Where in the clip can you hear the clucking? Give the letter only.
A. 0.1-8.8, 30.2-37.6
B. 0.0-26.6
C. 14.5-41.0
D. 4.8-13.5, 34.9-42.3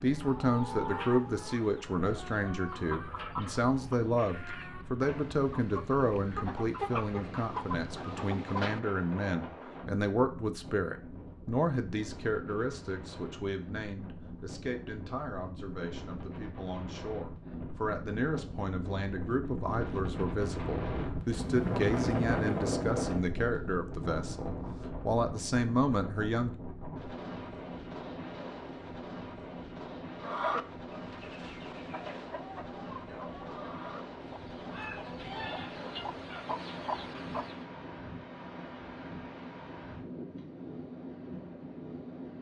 A.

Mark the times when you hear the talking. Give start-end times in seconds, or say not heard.
0.0-26.6.